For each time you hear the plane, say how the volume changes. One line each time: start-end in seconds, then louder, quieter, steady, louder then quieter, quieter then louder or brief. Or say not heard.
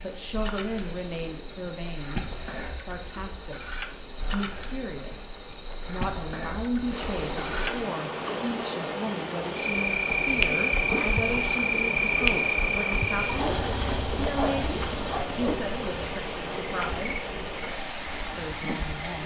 not heard.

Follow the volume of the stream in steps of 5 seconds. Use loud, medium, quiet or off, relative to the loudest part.
quiet, loud, loud, loud.